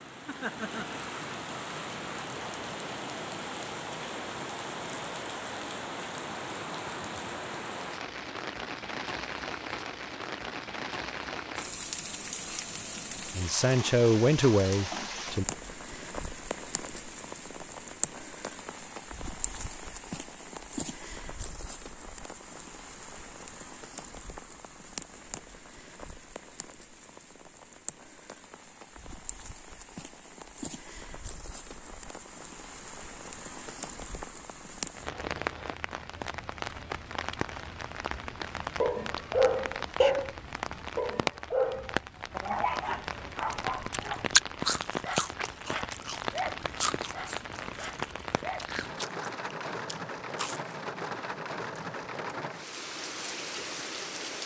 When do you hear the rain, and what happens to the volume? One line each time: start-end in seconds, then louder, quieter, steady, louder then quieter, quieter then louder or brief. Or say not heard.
0.0-54.4 quieter then louder.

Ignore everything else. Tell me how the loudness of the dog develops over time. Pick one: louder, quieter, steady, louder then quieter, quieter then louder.
quieter.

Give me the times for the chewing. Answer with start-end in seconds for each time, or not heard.
43.5-50.8.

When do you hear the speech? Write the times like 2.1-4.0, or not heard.
13.3-15.4.